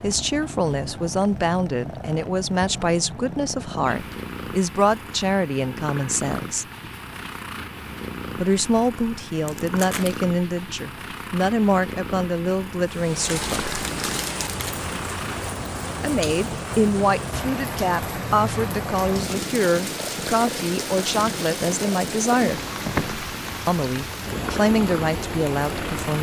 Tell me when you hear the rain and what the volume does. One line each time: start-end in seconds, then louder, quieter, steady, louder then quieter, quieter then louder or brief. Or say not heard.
12.8-26.1 steady.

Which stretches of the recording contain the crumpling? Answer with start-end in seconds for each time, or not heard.
9.4-10.2, 13.2-14.8.